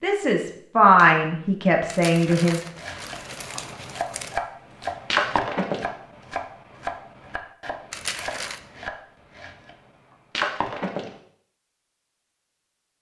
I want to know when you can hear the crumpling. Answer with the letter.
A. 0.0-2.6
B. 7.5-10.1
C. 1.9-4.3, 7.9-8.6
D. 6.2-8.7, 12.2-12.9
C.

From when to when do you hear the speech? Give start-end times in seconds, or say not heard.
0.0-2.6.